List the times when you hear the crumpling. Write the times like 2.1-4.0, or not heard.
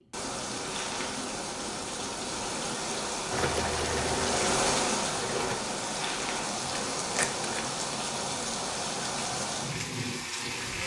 0.6-1.1, 5.9-6.5.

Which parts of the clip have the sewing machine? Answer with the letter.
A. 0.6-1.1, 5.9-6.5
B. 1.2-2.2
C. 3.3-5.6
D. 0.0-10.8
C.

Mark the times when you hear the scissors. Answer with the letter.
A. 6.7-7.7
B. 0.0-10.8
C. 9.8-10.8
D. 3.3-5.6
A.